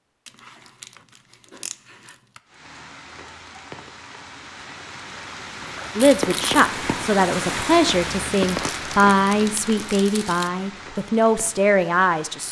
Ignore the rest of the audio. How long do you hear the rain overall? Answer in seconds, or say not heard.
10 s.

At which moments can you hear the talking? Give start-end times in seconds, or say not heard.
6.0-12.4.